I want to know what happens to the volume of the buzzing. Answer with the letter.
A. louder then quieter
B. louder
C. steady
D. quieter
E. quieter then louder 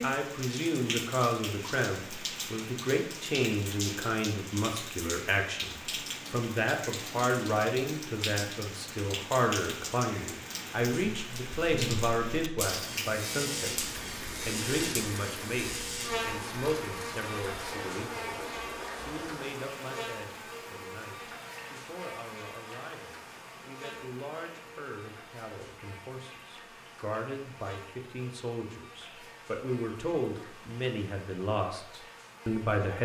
D.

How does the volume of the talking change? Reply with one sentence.
The loudness of the talking goes down, then up.